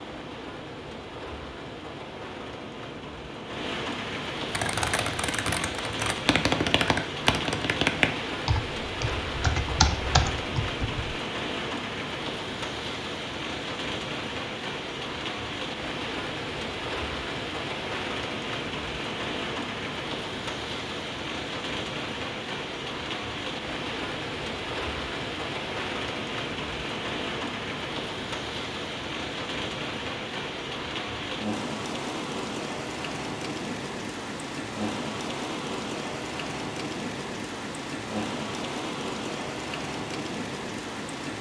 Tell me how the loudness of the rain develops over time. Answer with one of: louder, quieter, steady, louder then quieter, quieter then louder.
steady.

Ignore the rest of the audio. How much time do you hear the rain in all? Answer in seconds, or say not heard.
41 s.